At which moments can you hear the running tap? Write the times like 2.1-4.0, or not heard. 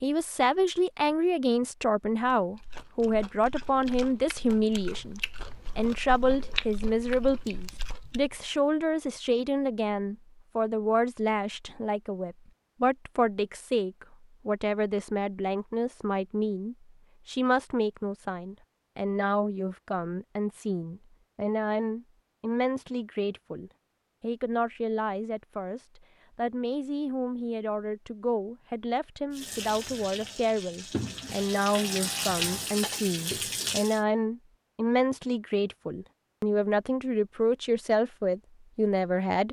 29.3-34.0.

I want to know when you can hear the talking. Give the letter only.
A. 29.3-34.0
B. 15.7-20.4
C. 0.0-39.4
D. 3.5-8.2
C.